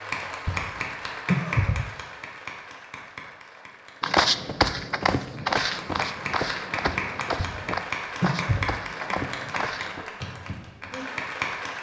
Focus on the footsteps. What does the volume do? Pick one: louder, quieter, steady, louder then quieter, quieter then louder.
quieter.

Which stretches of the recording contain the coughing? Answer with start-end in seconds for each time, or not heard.
0.5-1.9, 7.3-8.7.